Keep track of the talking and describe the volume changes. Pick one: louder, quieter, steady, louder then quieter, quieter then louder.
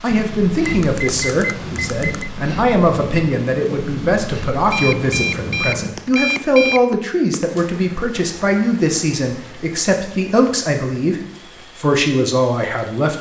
steady.